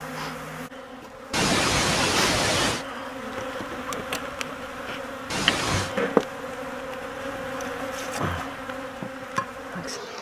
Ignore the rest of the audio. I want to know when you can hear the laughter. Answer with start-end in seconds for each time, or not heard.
1.3-2.9, 5.3-6.0.